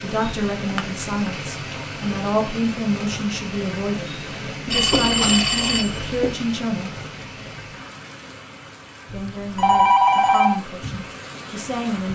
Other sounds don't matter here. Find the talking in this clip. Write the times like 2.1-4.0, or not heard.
0.0-6.9, 9.1-12.0.